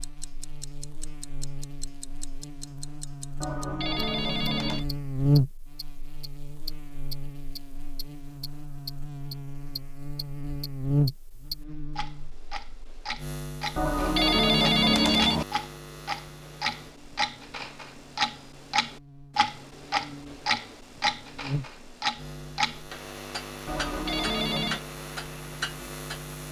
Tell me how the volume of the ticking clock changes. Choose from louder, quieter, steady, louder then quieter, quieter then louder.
louder then quieter.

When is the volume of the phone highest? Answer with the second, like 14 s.
15 s.